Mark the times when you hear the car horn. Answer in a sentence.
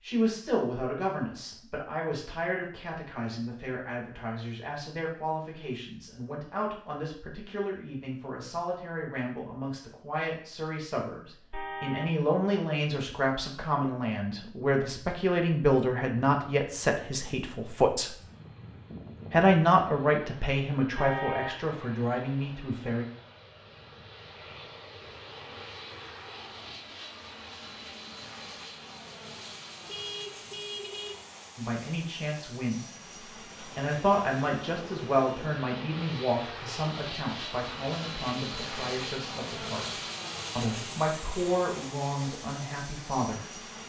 You can hear the car horn from 11.5 to 12.2 s, from 20.9 to 21.6 s and from 29.9 to 31.2 s.